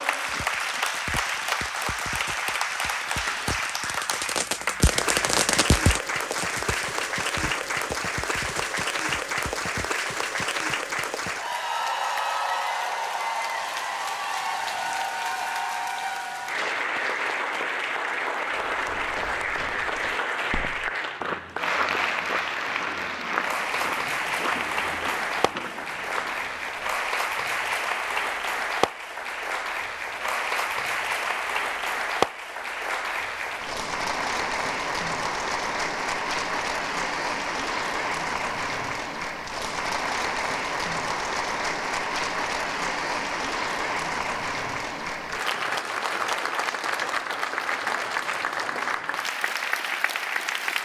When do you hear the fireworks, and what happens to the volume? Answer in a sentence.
You can hear the fireworks from 0.1 to 10.0 s, getting louder then quieter.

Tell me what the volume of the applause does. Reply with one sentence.
The volume of the applause stays about the same.